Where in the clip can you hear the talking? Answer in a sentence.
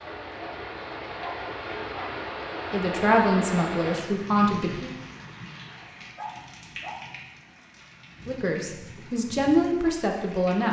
The talking can be heard from 2.7 to 4.9 s and from 8.2 to 10.6 s.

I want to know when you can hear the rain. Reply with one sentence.
You can hear the rain from 0.0 to 10.6 s.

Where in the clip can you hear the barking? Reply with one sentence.
You can hear the barking from 1.1 to 2.2 s and from 6.0 to 7.2 s.